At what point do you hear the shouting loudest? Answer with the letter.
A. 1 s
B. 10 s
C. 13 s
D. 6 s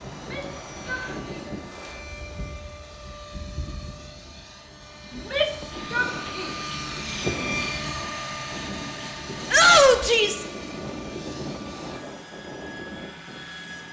B.